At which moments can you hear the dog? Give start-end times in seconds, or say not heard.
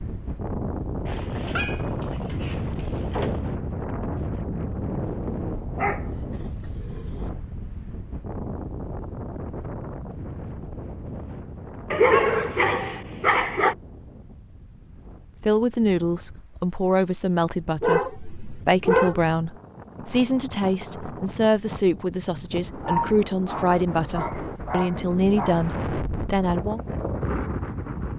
1.1-3.4, 5.8-7.2, 11.9-13.8, 17.8-19.2, 22.8-25.6.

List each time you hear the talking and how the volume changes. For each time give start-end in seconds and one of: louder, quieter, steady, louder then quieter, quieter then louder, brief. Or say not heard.
15.4-26.8 steady.